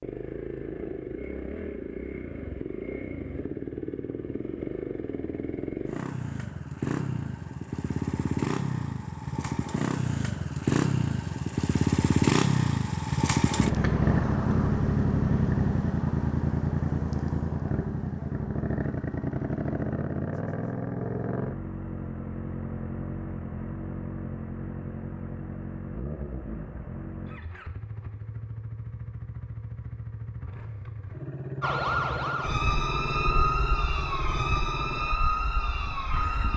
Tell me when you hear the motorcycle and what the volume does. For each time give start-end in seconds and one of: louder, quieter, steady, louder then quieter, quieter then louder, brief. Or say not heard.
0.0-36.5 louder then quieter.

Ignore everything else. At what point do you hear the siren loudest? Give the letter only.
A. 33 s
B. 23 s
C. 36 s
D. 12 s
A.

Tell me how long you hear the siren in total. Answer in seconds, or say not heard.
5 s.